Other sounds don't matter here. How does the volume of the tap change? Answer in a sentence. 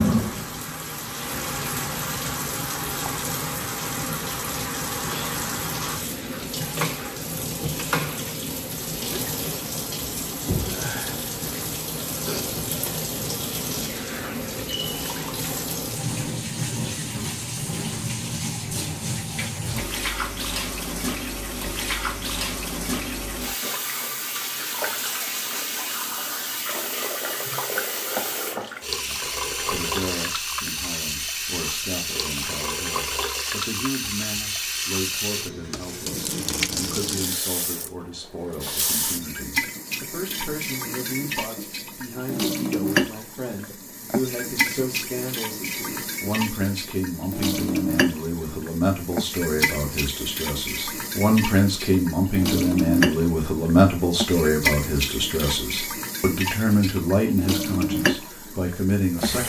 The loudness of the tap stays about the same.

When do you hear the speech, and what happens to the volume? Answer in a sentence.
The speech can be heard from 29.1 to 59.4 s, getting louder.